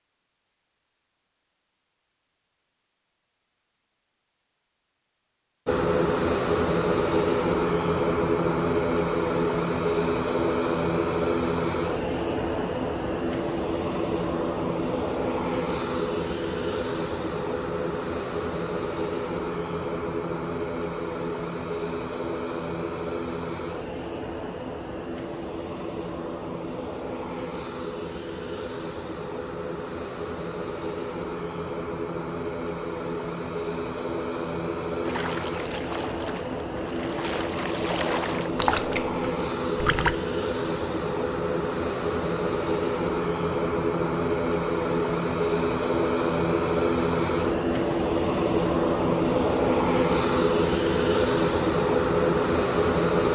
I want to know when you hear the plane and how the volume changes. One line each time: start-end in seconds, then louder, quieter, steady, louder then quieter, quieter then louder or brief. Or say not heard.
5.7-53.3 quieter then louder.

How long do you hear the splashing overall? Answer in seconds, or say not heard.
5 s.